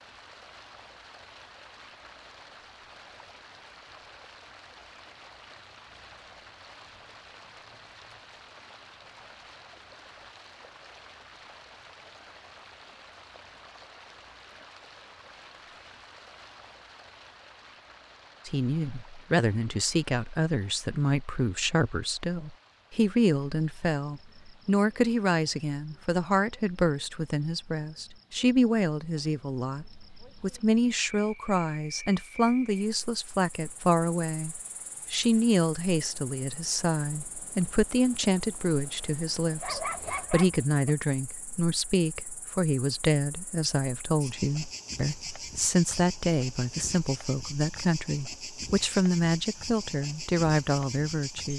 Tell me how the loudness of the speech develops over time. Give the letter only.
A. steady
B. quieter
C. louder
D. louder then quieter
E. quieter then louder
A.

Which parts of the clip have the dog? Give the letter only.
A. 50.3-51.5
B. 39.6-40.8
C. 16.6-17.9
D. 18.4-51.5
B.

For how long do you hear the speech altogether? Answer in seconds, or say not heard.
33 s.